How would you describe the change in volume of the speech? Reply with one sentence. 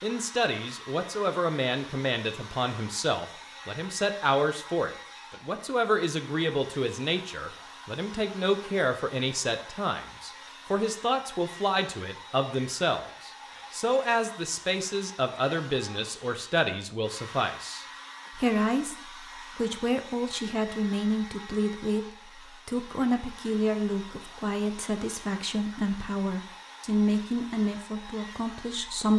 The loudness of the speech stays about the same.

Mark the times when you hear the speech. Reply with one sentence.
You can hear the speech from 0.0 to 29.1 s.